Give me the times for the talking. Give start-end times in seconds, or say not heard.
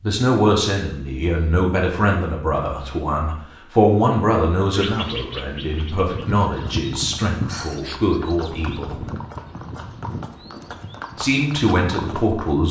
0.0-9.0, 11.2-12.6.